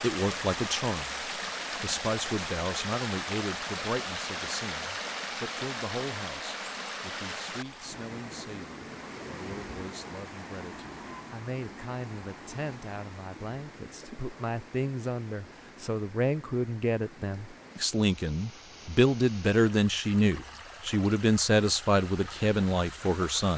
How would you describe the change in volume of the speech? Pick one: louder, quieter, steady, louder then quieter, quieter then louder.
quieter then louder.